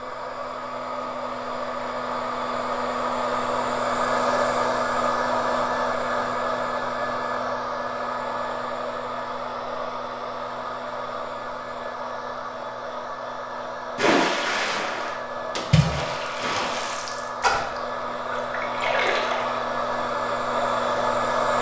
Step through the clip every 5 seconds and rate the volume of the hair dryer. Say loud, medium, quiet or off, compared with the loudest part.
loud, loud, medium, medium, loud.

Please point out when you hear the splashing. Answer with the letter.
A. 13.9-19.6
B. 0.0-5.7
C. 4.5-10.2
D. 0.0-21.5
A.